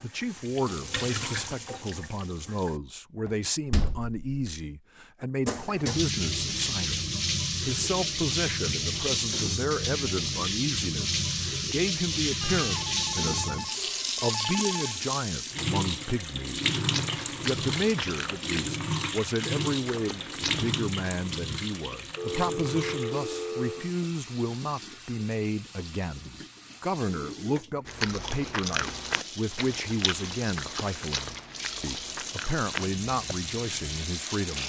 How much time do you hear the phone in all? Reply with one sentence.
The phone can be heard for 4 seconds in total.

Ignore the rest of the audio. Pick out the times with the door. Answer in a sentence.
The door can be heard from 3.2 to 4.5 s.